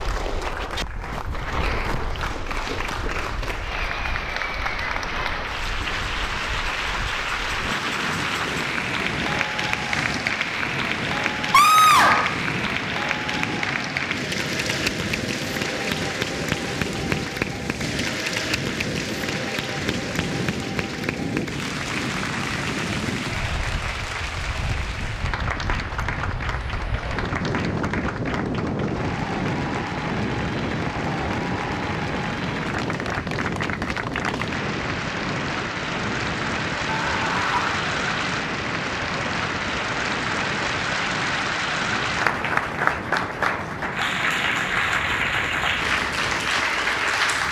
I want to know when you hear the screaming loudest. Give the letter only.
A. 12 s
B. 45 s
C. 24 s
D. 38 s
A.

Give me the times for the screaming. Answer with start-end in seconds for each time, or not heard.
11.5-12.4, 36.9-37.9.